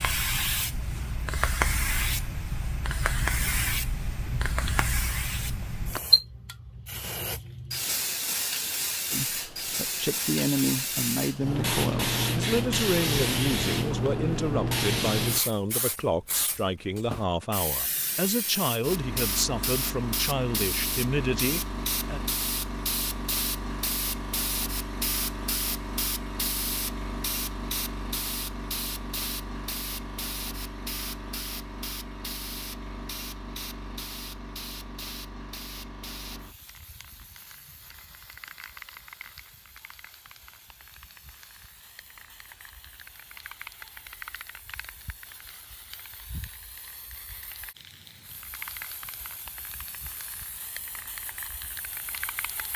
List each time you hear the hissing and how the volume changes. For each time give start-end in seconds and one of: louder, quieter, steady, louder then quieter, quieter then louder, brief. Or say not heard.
0.0-52.7 quieter.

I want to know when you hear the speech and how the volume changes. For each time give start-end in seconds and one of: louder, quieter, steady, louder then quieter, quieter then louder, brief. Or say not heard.
9.1-22.2 steady.